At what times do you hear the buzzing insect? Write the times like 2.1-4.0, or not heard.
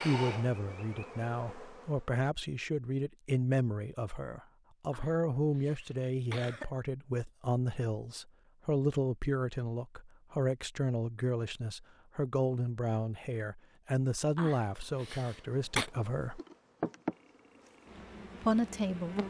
0.0-1.9, 14.8-19.2.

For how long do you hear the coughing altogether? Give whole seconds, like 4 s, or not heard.
3 s.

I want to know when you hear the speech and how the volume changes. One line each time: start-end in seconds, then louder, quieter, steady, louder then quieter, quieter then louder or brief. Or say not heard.
0.0-16.4 steady
18.4-19.1 brief.